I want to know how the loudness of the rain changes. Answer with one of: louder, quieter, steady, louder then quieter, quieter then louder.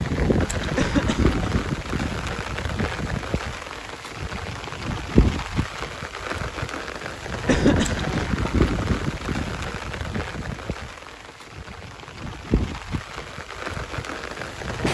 quieter.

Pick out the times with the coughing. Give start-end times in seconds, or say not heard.
0.8-1.4, 7.5-8.2.